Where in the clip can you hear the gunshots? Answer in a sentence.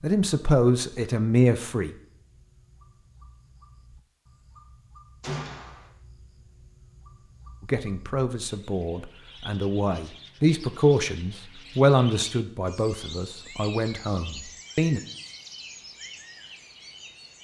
You can hear the gunshots from 5.2 to 5.9 s.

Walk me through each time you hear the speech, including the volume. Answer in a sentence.
The speech can be heard briefly from 0.0 to 1.9 s; and from 7.6 to 15.0 s, getting louder then quieter.